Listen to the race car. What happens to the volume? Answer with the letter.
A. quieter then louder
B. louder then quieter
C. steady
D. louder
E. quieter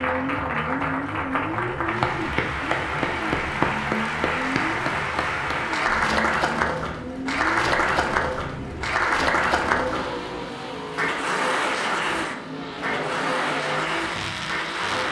C.